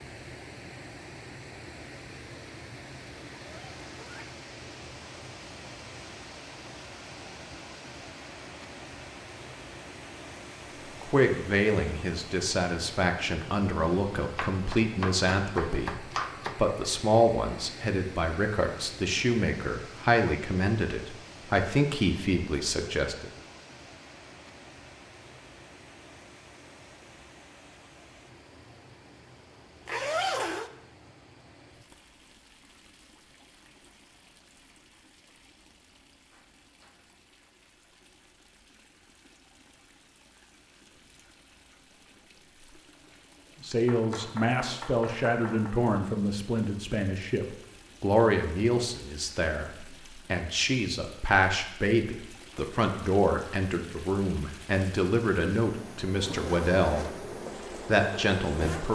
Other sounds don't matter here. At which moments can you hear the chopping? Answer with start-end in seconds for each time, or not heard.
14.3-16.6, 43.9-45.8.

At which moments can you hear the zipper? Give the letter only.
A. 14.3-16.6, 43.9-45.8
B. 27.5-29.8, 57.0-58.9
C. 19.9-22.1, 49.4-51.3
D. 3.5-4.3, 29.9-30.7
D.